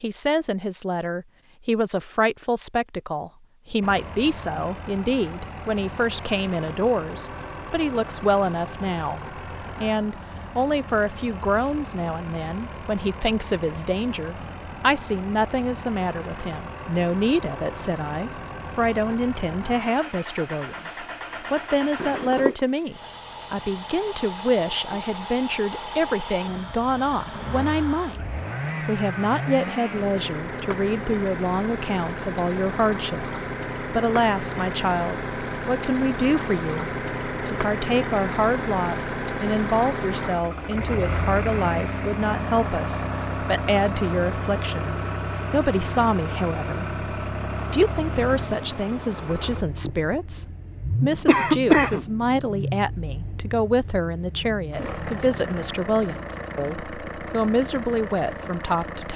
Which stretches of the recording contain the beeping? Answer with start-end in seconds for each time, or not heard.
22.0-22.6.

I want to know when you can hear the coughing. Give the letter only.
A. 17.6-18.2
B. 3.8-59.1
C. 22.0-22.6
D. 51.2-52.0
D.